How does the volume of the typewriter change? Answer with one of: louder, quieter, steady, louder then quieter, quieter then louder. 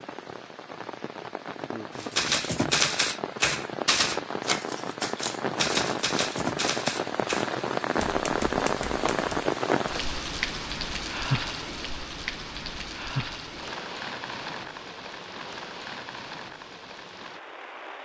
quieter.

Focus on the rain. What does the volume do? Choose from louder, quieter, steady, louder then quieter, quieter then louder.
louder then quieter.